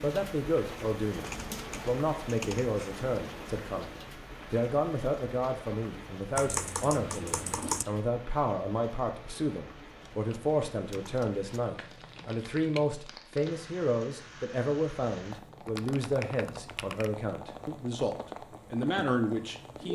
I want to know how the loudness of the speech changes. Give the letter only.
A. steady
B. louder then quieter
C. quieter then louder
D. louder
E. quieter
A.